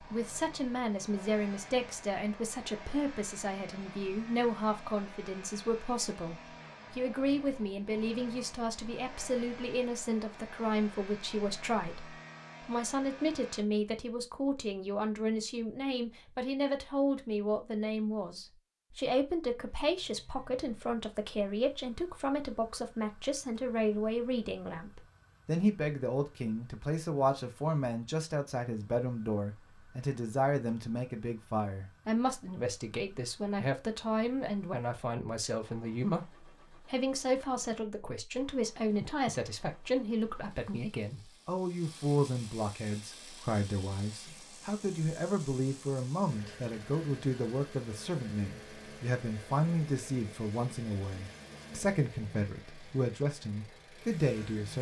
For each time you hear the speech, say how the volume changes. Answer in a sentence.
The speech can be heard from 0.0 to 54.7 s, at a steady volume.